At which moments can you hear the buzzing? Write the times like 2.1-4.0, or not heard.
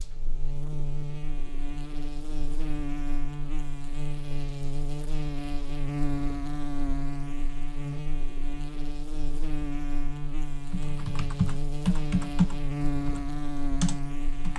0.0-14.5.